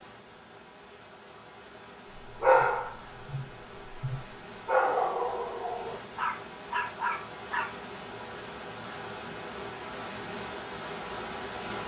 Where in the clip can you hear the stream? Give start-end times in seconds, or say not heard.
0.0-11.8.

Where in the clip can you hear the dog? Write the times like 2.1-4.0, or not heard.
2.4-7.7.